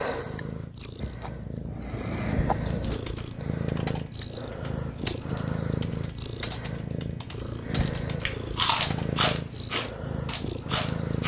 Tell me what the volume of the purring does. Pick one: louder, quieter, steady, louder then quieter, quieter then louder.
steady.